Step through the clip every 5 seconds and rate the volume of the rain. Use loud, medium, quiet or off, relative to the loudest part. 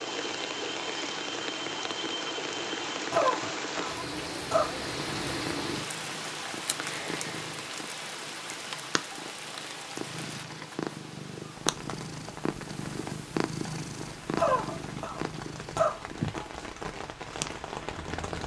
loud, loud, medium, medium.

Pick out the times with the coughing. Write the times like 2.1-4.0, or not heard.
3.1-4.8, 14.3-16.4.